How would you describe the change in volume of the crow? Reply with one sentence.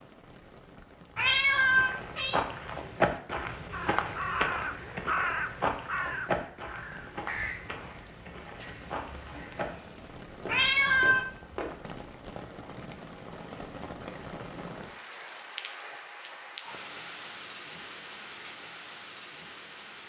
The volume of the crow goes down.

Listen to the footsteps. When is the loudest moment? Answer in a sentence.
The volume of the footsteps peaks at 3 seconds.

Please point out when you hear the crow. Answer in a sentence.
The crow can be heard from 3.7 to 10.1 s.